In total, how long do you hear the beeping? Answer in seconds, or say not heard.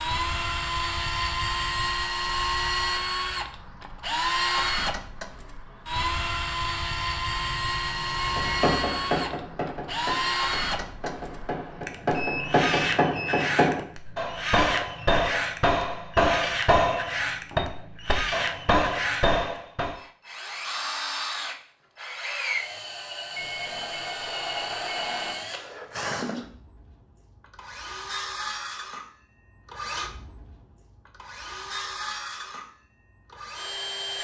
5 s.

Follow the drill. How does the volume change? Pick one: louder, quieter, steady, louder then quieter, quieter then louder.
quieter.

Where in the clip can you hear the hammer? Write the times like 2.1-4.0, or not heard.
8.2-19.9.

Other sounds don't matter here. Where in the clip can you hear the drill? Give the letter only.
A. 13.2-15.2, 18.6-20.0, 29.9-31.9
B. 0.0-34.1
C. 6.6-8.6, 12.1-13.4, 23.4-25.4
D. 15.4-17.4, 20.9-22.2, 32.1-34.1
B.